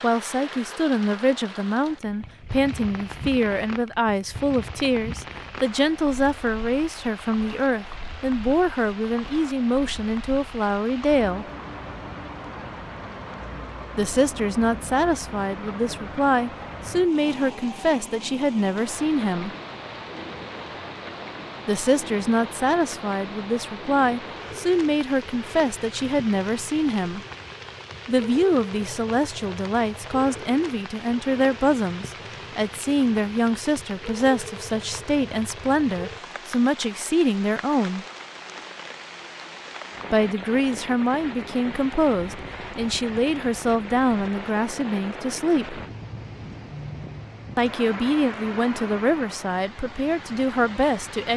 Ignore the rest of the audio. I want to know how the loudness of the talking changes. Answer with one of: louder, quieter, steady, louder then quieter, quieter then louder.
steady.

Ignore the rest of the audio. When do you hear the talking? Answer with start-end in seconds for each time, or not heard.
0.0-11.4, 13.9-19.5, 21.6-27.2, 28.1-38.0, 40.1-45.8, 47.5-51.3.